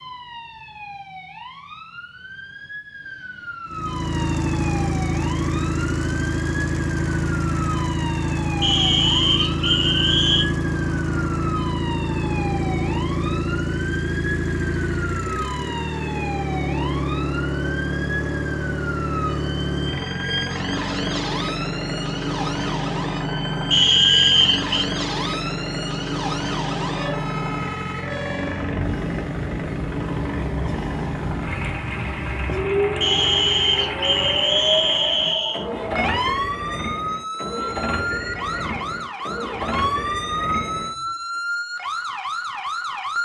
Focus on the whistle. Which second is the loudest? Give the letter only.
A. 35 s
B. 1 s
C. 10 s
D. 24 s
D.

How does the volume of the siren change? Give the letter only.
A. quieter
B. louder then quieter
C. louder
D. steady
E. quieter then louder
C.